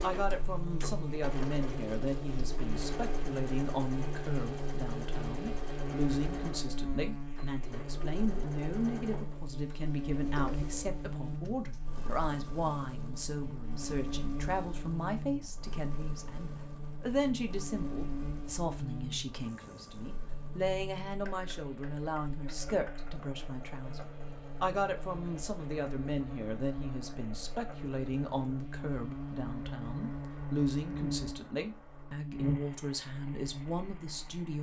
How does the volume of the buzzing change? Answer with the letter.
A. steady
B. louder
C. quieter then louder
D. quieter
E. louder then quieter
C.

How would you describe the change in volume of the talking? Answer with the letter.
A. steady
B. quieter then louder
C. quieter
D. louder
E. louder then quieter
A.